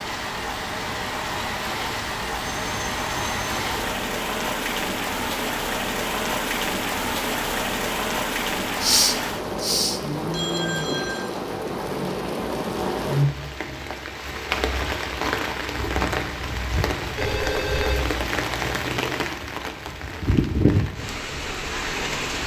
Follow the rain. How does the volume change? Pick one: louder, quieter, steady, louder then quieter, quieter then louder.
steady.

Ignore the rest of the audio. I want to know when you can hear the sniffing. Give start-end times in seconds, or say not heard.
8.8-10.0.